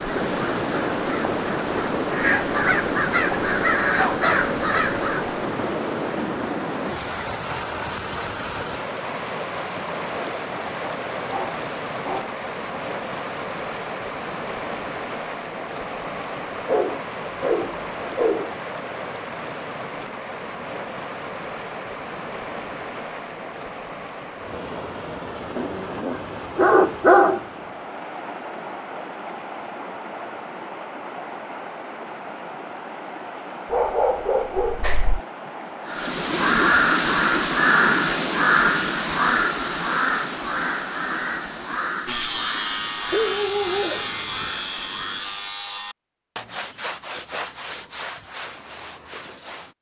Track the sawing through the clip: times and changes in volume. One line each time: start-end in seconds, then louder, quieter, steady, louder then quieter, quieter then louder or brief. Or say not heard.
42.0-49.7 quieter.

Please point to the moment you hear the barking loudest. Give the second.
27 s.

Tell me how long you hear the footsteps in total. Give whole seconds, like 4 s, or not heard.
not heard.